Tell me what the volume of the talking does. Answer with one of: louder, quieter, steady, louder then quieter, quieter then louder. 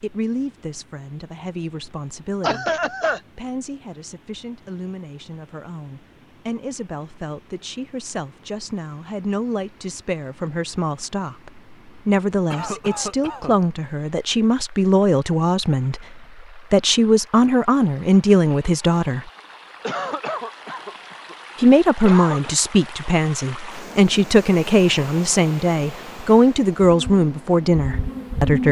louder.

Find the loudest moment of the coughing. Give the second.
3 s.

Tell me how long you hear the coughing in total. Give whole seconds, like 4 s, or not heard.
4 s.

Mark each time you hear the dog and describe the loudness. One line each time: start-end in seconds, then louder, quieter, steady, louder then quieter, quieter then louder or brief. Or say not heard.
not heard.